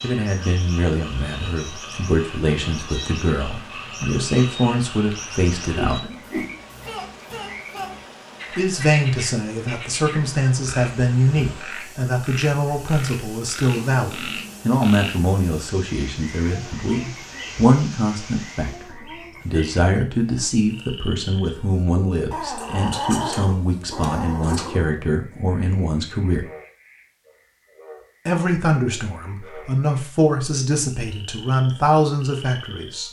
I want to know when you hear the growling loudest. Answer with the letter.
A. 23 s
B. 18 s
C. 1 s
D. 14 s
A.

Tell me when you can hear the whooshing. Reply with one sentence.
The whooshing can be heard from 5.8 to 6.5 s.